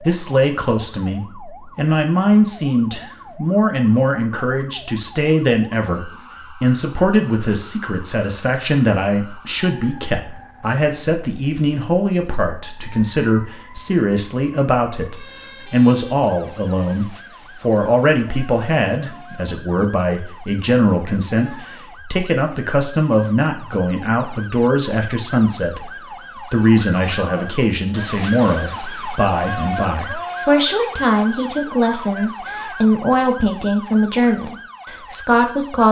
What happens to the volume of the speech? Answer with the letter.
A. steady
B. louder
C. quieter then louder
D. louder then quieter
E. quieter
A.